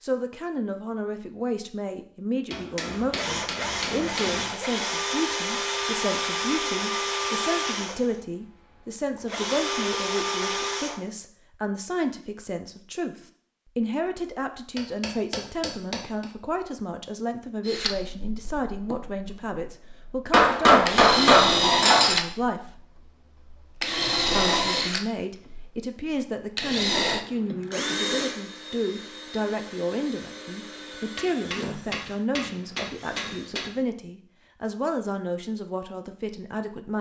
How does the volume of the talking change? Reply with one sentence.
The loudness of the talking stays about the same.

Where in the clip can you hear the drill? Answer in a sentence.
You can hear the drill from 3.0 to 11.0 s and from 17.6 to 33.6 s.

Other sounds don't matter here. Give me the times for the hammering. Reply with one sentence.
The hammering can be heard from 2.5 to 4.5 s, from 14.8 to 16.2 s, from 20.3 to 22.1 s and from 31.1 to 33.7 s.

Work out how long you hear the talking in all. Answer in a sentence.
You can hear the talking for 35 seconds altogether.